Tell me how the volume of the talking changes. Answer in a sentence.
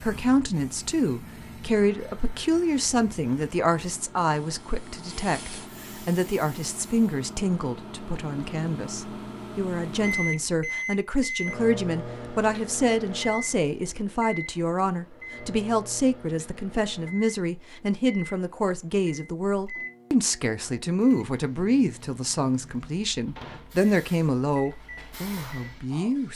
The volume of the talking stays about the same.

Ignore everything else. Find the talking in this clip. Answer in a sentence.
The talking can be heard from 0.0 to 26.3 s.